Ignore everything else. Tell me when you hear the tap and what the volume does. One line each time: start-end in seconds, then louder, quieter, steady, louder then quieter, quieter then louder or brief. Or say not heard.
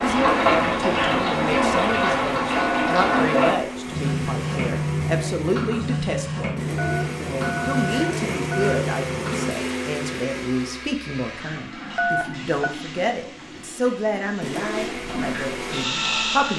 0.0-16.5 quieter.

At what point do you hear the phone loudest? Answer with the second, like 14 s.
12 s.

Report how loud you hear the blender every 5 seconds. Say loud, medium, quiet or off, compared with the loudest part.
medium, loud, medium, loud.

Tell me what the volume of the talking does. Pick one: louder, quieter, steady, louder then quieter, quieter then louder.
steady.